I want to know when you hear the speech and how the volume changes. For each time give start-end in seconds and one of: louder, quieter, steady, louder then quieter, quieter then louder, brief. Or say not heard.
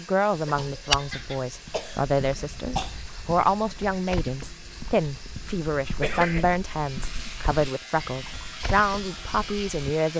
0.0-10.1 steady.